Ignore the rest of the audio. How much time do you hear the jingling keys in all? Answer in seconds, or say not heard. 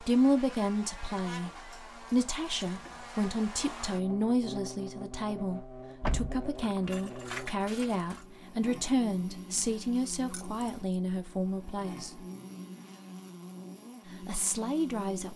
4 s.